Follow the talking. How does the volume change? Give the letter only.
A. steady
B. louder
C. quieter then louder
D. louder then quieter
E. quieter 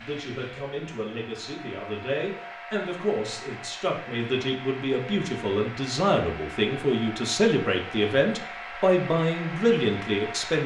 B.